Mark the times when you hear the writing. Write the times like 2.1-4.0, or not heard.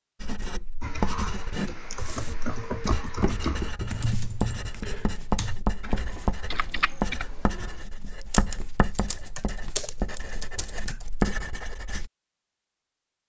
0.2-12.1.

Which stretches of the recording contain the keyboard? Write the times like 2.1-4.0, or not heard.
0.8-11.1.